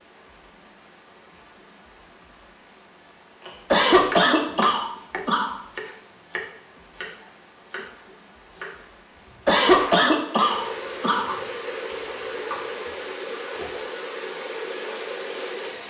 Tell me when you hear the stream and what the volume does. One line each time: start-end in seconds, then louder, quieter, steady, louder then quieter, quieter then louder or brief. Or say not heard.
0.0-15.8 louder.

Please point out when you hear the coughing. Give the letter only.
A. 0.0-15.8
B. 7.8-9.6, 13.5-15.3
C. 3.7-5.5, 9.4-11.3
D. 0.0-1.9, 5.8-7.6
C.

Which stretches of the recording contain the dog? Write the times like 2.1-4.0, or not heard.
not heard.